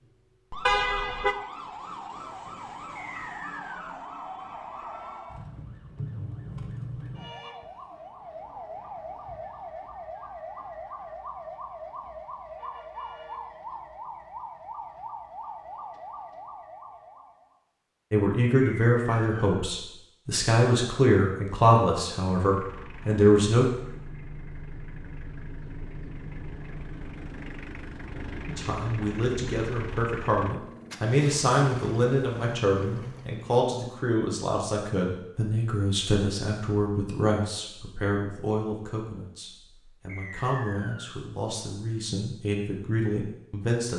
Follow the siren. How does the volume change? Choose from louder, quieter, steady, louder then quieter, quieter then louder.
steady.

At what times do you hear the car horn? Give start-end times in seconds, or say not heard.
0.7-1.4.